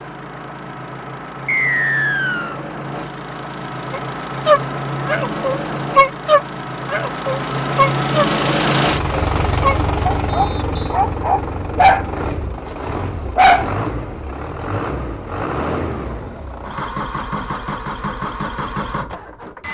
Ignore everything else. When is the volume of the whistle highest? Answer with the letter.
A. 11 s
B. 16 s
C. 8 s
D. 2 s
D.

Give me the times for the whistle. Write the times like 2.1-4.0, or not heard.
1.4-2.6, 10.2-10.9.